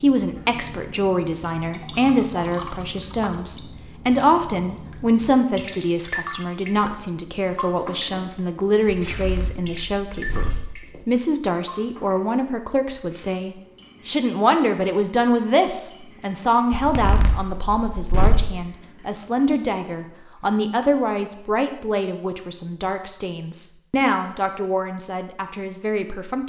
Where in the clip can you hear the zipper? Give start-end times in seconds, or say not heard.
8.9-10.7, 16.7-18.5.